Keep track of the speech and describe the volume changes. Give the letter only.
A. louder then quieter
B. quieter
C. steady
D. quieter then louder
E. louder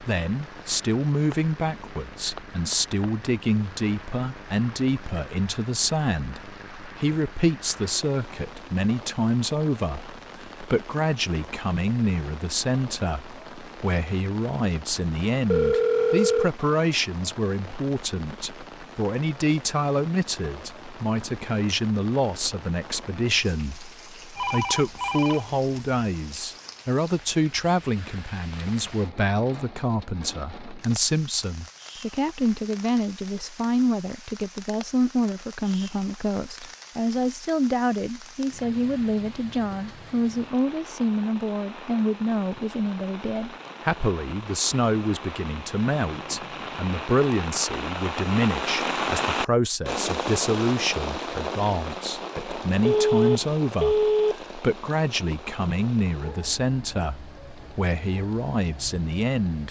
C.